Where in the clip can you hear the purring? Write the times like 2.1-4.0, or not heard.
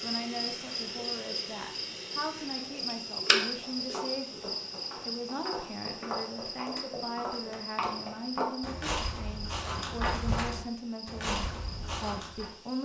not heard.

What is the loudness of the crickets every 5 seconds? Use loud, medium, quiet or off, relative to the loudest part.
loud, medium, quiet.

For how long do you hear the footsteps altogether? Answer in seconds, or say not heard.
9 s.